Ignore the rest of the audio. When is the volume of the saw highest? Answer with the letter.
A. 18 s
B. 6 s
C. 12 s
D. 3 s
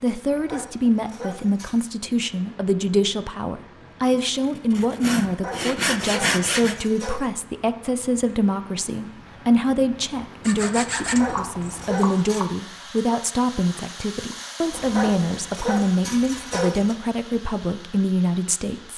B.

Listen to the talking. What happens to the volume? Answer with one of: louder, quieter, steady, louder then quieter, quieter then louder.
steady.